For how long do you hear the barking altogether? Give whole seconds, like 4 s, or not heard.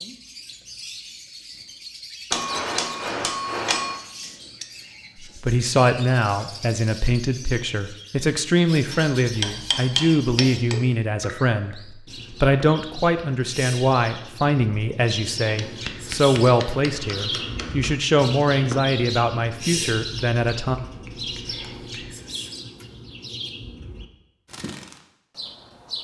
not heard.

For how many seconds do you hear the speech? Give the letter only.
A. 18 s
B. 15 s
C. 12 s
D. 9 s
B.